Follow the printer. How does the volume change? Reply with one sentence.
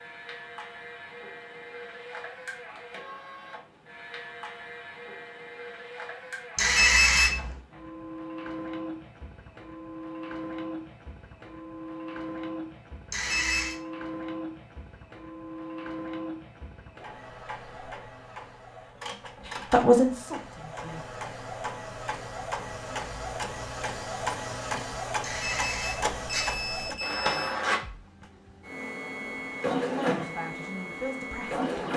The volume of the printer goes up.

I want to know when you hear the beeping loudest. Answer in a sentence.
The loudest moment of the beeping is at 7 seconds.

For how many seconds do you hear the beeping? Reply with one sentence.
The beeping can be heard for 4 seconds in total.